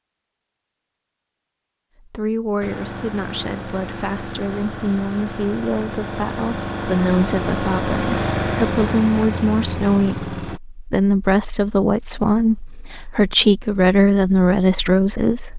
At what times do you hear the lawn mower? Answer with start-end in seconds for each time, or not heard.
2.6-10.6.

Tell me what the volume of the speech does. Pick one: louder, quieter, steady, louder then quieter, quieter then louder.
louder.